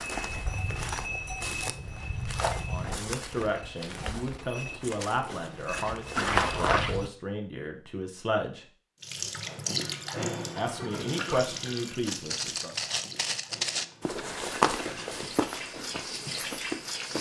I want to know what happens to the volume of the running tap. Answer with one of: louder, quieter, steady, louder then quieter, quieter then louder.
quieter then louder.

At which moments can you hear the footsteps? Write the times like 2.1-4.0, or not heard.
0.0-7.1, 12.1-17.1.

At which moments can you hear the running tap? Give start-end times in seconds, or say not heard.
9.0-17.1.